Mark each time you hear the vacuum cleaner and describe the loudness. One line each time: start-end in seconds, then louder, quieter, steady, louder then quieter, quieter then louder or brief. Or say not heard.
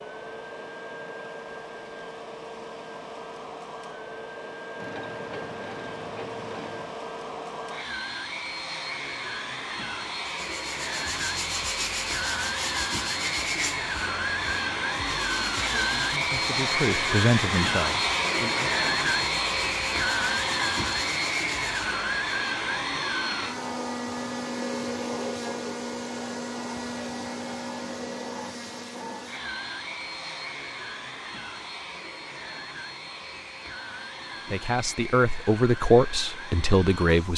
0.0-37.3 louder then quieter.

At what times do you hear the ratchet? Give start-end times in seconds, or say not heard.
4.8-7.0.